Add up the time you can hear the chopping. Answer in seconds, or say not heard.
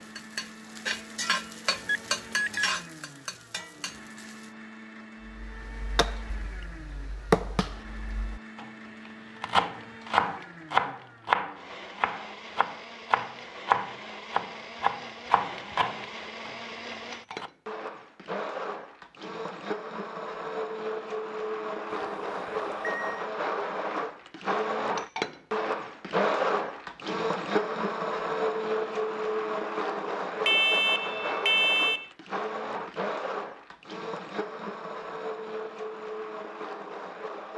12 s.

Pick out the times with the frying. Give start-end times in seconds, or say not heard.
0.0-4.5.